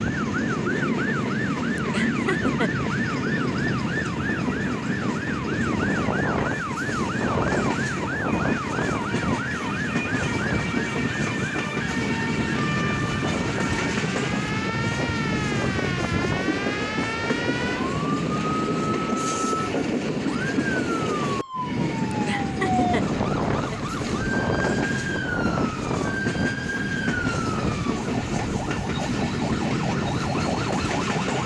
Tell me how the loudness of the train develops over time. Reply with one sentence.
The loudness of the train stays about the same.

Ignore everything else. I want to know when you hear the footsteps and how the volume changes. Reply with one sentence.
The footsteps can't be heard in this clip.